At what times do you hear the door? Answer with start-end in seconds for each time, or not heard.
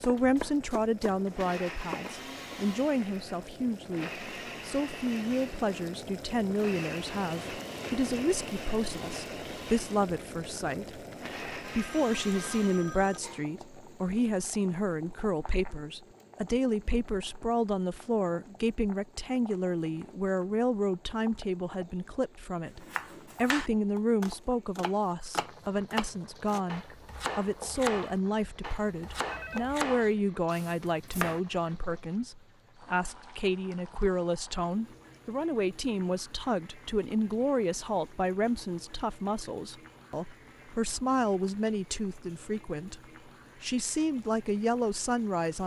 not heard.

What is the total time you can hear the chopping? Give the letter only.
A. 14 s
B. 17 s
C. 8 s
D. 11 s
D.